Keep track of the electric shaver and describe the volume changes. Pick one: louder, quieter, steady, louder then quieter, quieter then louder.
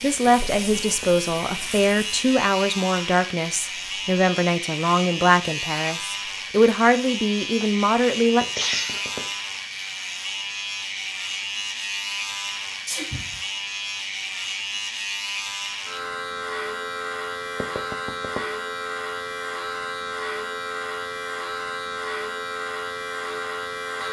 steady.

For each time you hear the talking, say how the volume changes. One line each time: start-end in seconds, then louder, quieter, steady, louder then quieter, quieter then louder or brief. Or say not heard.
0.0-8.4 steady.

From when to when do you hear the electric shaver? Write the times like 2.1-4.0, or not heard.
0.0-24.0.